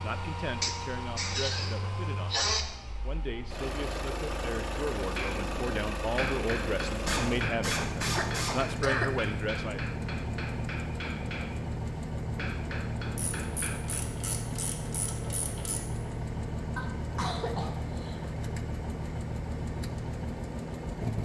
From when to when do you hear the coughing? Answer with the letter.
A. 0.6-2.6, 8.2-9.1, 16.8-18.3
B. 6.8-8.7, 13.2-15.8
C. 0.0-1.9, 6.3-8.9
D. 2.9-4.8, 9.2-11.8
A.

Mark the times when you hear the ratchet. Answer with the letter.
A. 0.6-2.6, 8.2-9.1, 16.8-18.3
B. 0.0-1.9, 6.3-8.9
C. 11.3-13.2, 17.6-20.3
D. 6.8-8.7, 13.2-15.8
D.